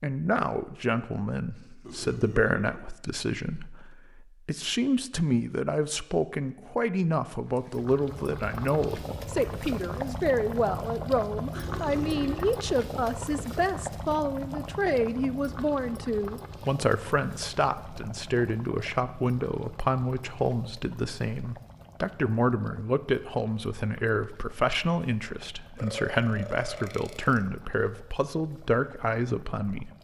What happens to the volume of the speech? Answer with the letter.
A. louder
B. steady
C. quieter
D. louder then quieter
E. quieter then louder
B.